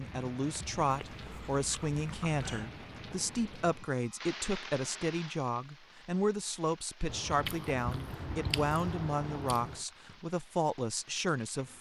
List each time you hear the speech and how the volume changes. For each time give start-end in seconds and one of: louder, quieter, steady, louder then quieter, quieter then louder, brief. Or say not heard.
0.0-11.7 steady.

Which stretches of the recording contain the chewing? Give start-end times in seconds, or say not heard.
0.8-2.7, 7.0-9.8.